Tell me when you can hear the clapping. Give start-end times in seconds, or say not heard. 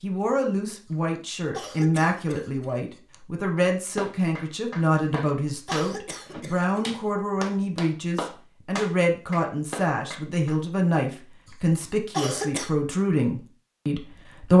3.5-10.6.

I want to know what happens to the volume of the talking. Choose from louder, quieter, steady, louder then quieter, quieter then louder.
steady.